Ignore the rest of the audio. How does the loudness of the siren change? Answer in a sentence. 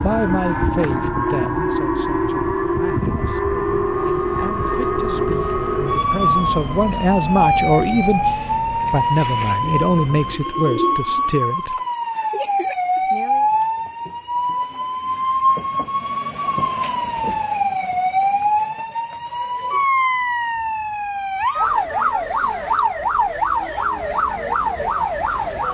The volume of the siren stays about the same.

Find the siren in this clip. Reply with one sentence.
The siren can be heard from 0.0 to 25.6 s.